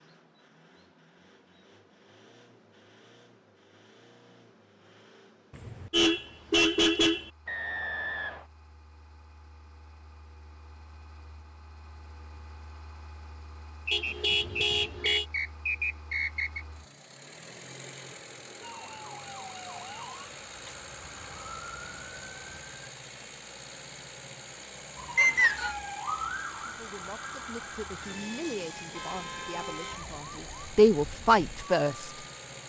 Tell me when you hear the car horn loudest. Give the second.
7 s.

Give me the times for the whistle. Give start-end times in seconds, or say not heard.
7.5-8.4, 13.8-16.6, 25.1-25.8.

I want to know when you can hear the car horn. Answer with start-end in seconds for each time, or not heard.
5.5-7.3, 13.9-15.2, 28.9-30.1.